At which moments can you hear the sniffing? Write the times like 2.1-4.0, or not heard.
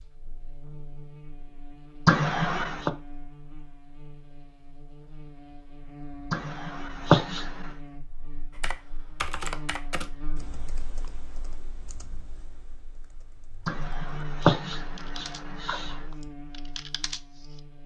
2.0-2.9, 6.3-7.7, 13.7-15.9.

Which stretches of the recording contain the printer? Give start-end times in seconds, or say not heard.
not heard.